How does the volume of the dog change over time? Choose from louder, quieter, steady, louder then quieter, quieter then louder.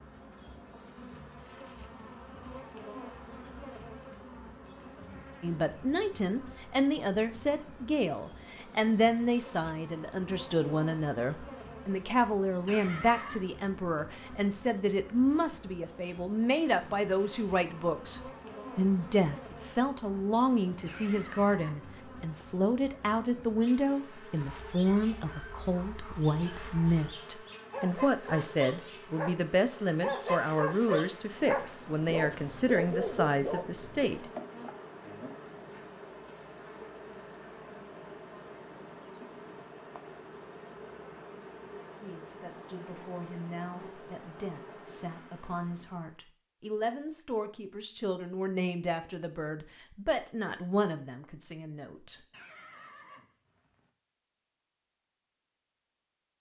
louder.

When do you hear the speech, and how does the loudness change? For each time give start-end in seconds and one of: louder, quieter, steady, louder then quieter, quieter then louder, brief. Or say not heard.
5.4-34.2 steady
42.0-52.2 louder.